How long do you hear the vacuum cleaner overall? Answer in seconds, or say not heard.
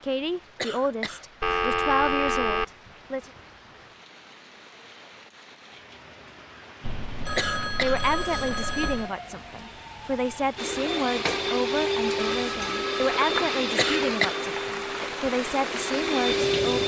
6 s.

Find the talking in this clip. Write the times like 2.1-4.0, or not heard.
0.0-3.2, 7.8-16.8.